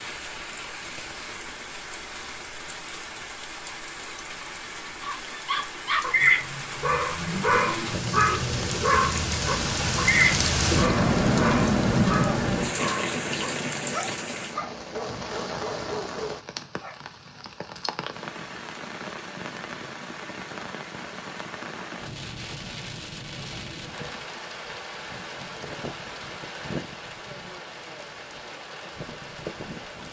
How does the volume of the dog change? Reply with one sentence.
The loudness of the dog goes down.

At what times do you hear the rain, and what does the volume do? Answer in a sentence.
The rain can be heard from 0.0 to 30.0 s, getting louder then quieter.